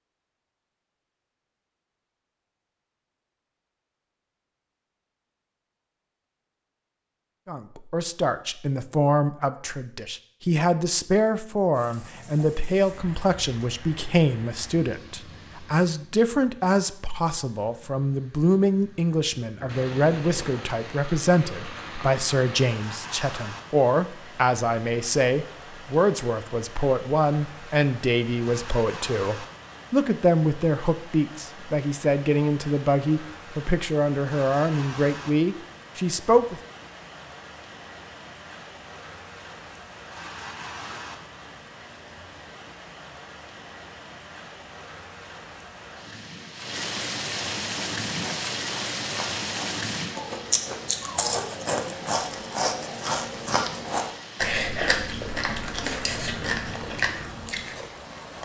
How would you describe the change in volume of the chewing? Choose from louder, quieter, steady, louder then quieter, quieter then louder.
louder.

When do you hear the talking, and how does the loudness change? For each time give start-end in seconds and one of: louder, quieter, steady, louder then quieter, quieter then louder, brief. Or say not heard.
7.5-36.6 steady.